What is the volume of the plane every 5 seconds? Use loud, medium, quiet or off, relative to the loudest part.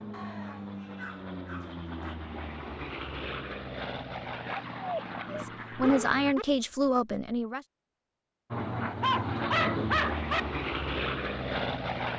medium, loud, loud.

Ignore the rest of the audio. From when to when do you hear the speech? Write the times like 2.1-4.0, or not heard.
5.3-7.6.